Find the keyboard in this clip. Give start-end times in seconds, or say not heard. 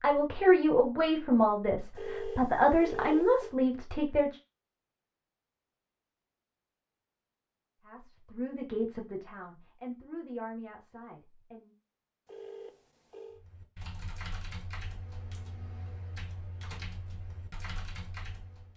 13.3-18.7.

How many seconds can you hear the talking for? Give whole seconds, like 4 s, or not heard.
8 s.